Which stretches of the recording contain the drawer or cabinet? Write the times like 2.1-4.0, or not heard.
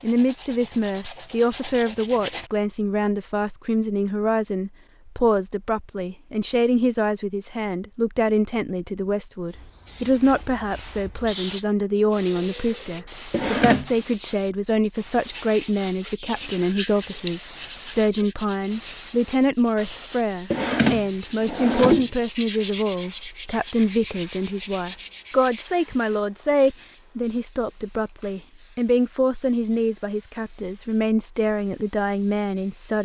13.3-13.9, 20.5-22.1.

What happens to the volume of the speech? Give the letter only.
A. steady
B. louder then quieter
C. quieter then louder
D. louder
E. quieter
A.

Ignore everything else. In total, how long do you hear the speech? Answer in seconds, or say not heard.
33 s.